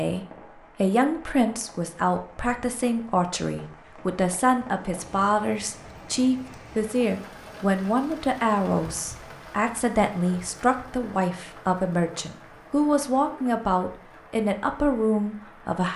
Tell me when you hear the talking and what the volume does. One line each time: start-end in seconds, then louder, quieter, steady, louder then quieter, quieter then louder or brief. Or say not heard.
0.0-15.9 steady.